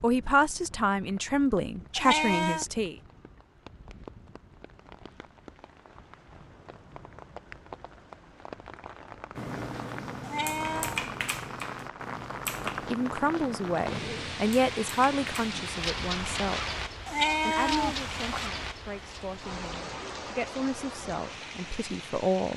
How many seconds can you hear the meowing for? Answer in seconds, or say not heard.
3 s.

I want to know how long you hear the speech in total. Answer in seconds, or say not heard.
12 s.